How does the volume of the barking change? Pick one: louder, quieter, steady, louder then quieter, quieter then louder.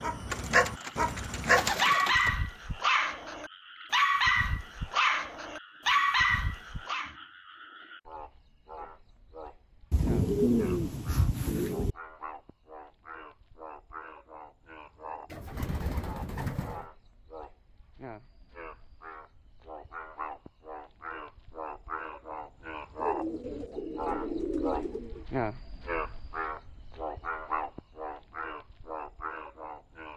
steady.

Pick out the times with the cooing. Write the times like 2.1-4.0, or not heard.
0.3-2.3, 9.9-11.9, 15.3-16.9, 22.9-25.2.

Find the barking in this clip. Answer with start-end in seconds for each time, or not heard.
0.0-7.1.